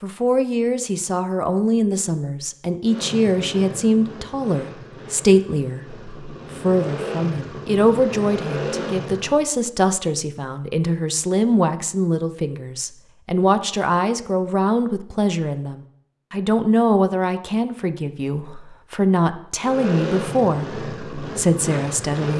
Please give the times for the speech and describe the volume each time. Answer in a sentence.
The speech can be heard from 0.0 to 22.3 s, at a steady volume.